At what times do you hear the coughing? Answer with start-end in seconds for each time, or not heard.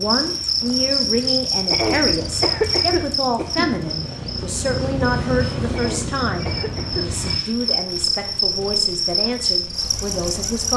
1.7-3.7, 5.7-7.0.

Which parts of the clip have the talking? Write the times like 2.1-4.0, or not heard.
0.0-10.7.